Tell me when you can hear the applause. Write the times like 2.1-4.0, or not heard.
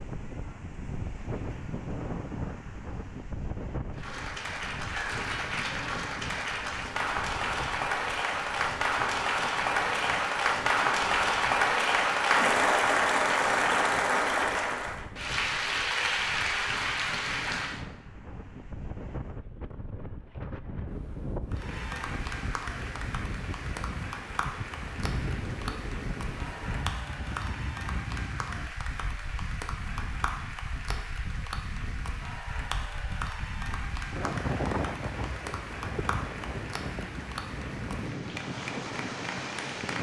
3.9-17.9, 21.5-39.9.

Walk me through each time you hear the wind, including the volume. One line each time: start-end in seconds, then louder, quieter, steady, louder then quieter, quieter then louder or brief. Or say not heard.
0.0-39.9 quieter then louder.